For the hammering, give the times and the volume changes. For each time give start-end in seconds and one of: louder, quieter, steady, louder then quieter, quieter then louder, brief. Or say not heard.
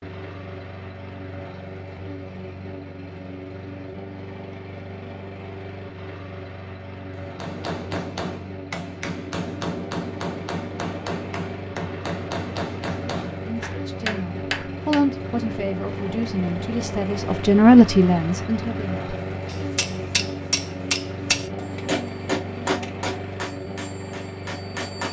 7.2-15.1 steady
19.4-25.0 quieter.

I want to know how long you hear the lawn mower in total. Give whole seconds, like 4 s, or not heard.
25 s.